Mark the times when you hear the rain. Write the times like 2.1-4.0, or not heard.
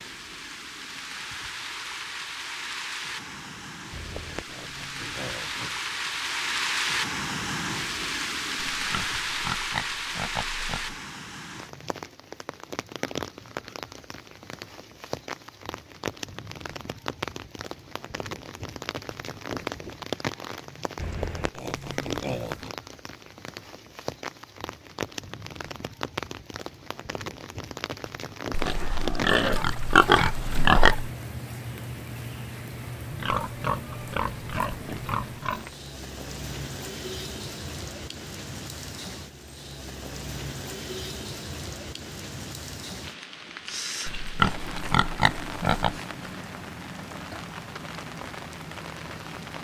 0.0-49.5.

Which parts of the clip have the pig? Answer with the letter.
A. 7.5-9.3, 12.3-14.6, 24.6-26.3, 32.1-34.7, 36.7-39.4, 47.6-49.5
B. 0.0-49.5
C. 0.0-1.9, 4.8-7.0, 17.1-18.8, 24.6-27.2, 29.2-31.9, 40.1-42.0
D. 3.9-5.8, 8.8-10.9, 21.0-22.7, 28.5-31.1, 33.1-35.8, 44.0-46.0
D.